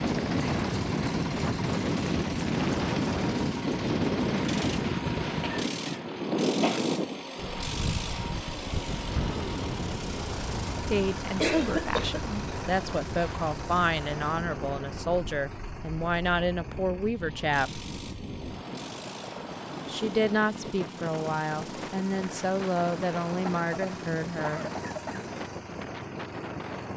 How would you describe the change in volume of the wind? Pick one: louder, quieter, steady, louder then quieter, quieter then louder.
quieter.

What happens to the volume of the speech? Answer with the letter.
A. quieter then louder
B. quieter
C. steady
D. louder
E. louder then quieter
C.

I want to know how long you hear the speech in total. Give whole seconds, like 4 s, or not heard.
12 s.